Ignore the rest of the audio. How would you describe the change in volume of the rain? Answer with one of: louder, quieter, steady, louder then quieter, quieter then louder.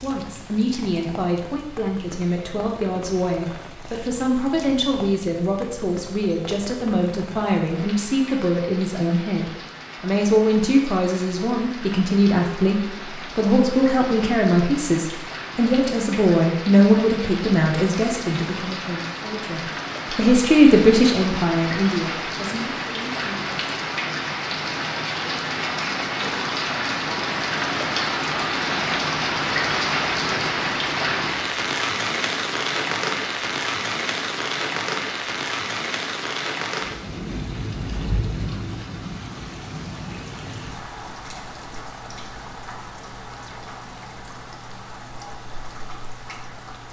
louder then quieter.